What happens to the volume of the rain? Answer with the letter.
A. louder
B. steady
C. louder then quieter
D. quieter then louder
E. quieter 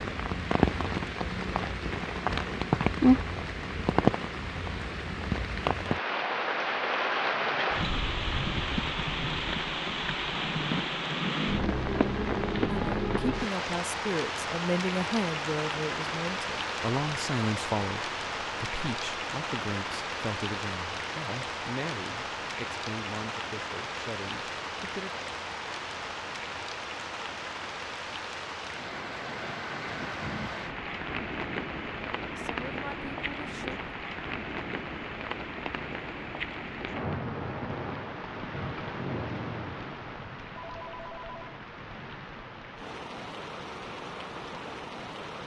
E.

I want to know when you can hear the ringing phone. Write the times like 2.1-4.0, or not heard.
40.5-41.5.